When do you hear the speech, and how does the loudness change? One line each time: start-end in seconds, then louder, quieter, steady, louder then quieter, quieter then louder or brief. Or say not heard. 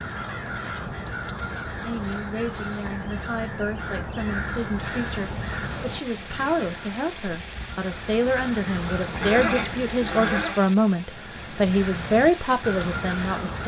1.8-13.6 louder.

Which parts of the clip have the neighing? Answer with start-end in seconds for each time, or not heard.
9.2-10.7.